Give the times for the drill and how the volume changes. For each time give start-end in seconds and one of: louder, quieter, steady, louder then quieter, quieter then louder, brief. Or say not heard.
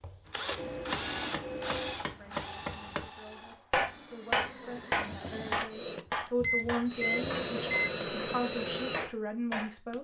0.0-9.9 quieter then louder.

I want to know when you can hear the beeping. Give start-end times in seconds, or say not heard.
0.6-2.0, 6.3-7.9.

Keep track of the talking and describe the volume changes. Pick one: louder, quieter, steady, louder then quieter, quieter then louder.
louder.